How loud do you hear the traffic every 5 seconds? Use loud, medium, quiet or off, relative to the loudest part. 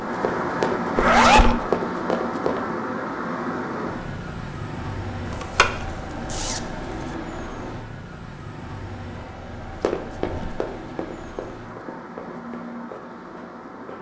loud, medium, medium.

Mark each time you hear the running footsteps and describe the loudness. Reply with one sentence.
The running footsteps can be heard briefly from 0.1 to 2.6 s; and from 9.8 to 13.9 s, getting quieter.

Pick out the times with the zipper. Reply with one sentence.
The zipper can be heard from 0.9 to 1.6 s, from 5.2 to 7.2 s and from 10.2 to 10.6 s.